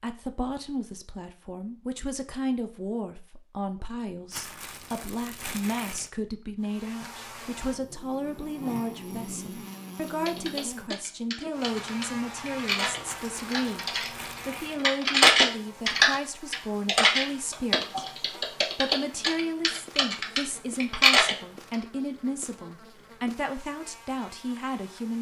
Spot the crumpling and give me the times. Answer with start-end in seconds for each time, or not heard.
4.3-6.1, 13.1-14.8.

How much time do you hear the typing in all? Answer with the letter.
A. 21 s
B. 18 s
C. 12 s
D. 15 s
C.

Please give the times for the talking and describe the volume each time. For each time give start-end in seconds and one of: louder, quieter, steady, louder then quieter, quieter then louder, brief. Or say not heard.
0.0-25.1 steady.